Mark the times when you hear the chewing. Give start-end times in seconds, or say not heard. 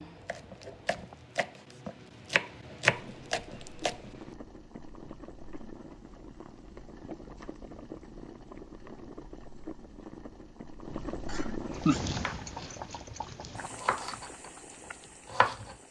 not heard.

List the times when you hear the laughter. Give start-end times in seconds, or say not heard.
11.2-12.0.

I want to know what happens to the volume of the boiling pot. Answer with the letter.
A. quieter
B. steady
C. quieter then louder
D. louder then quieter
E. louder
D.